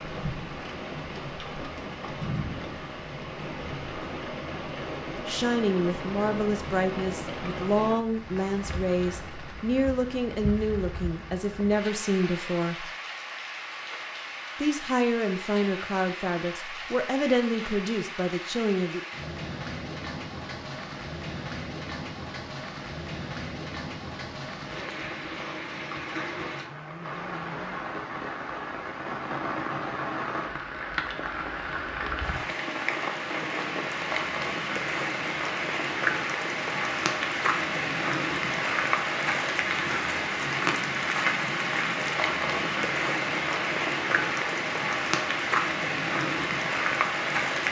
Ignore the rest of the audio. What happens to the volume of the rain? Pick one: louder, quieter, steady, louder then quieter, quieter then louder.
louder.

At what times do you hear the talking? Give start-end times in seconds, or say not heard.
5.2-12.9, 14.6-19.0.